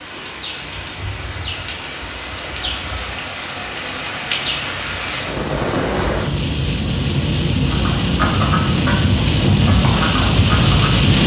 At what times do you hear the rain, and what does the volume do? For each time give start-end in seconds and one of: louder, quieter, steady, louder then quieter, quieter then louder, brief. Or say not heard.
0.0-11.2 louder.